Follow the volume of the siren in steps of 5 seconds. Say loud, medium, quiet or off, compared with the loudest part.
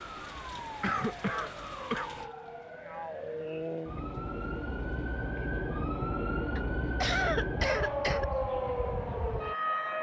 medium, loud.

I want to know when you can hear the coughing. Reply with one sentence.
The coughing can be heard from 0.6 to 2.1 s and from 6.5 to 8.2 s.